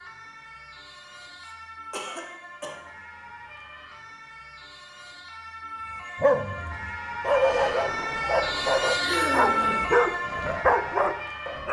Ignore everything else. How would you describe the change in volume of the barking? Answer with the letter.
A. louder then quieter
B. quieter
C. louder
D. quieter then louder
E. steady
E.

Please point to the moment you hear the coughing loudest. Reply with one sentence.
The volume of the coughing peaks at 9 seconds.